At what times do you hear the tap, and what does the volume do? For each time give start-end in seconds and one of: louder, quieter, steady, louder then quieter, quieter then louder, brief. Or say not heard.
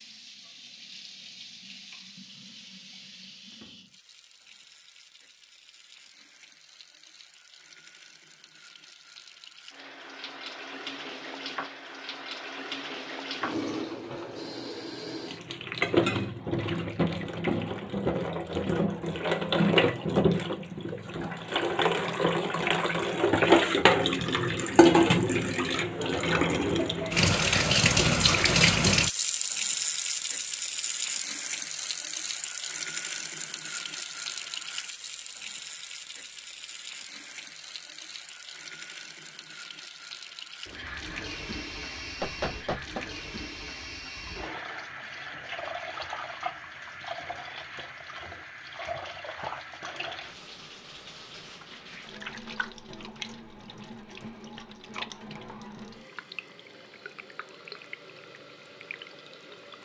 0.0-59.8 louder then quieter.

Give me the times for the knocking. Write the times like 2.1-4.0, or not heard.
42.2-43.0.